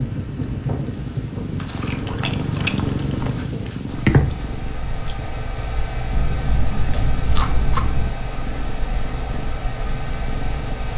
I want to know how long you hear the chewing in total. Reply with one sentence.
You can hear the chewing for 4 seconds altogether.